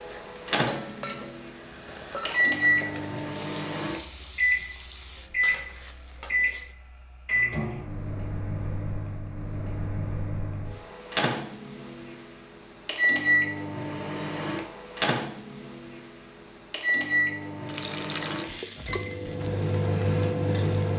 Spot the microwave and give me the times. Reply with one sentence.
You can hear the microwave from 0.0 to 20.9 s.